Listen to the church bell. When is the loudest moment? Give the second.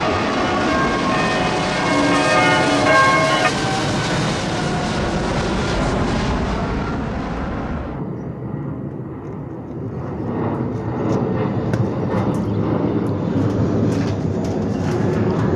3 s.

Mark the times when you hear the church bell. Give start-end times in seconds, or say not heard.
0.0-3.5.